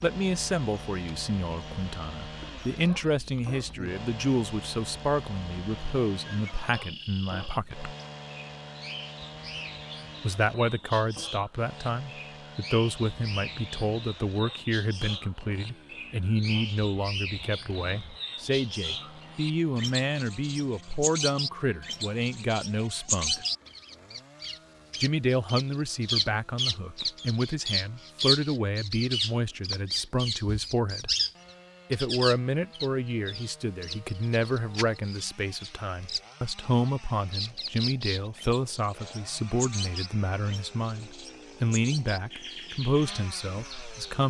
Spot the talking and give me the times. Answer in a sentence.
The talking can be heard from 0.0 to 8.0 s, from 10.2 to 23.4 s, from 25.0 to 31.1 s and from 31.9 to 44.2 s.